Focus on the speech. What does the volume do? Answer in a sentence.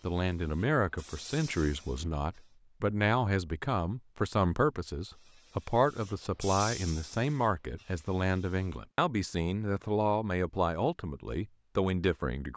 The loudness of the speech stays about the same.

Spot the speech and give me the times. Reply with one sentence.
The speech can be heard from 0.0 to 12.5 s.